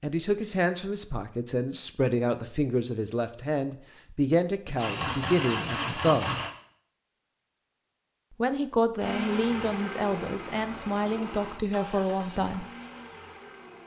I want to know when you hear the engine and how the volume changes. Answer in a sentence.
The engine can be heard briefly from 4.8 to 6.5 s; and from 8.9 to 13.8 s, getting quieter.